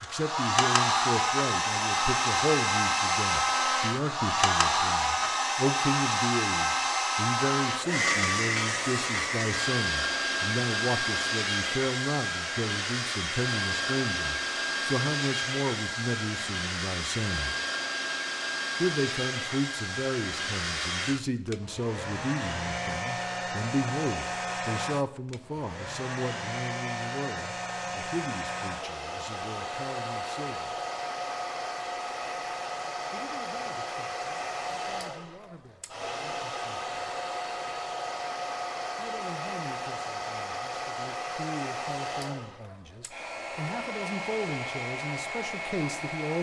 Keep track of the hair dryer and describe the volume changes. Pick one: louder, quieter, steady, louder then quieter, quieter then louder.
quieter.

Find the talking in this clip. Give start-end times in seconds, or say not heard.
0.0-17.6, 18.8-30.9, 33.1-37.1, 39.0-46.3.